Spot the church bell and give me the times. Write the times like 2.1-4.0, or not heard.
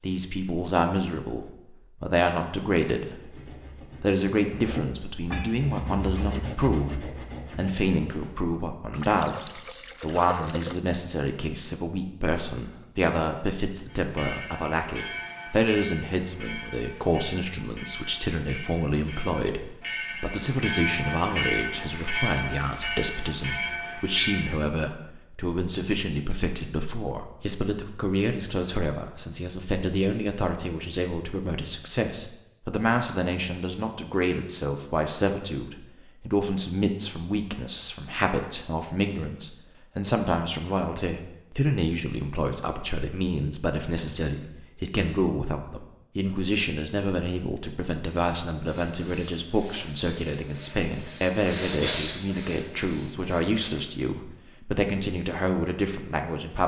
13.8-24.6.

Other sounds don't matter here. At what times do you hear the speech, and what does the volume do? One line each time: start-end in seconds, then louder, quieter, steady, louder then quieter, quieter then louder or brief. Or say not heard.
0.0-56.6 steady.